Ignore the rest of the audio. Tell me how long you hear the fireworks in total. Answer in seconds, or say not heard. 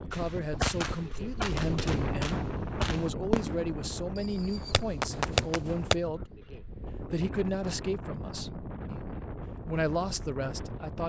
6 s.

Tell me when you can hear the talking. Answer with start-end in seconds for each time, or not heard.
0.0-6.4, 7.1-9.1, 9.7-11.0.